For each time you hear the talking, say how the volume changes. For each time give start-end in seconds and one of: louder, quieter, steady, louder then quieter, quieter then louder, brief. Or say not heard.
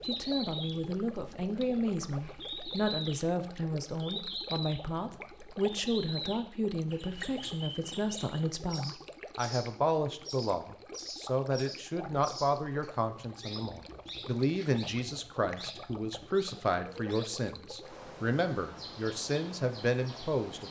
0.1-20.6 steady.